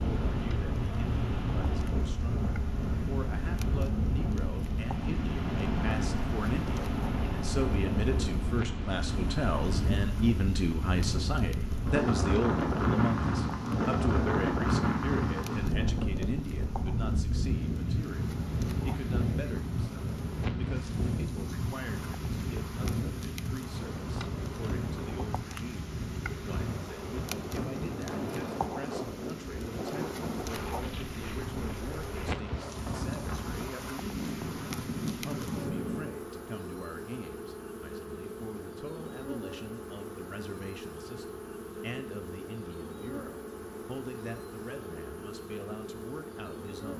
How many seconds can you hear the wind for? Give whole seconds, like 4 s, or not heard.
36 s.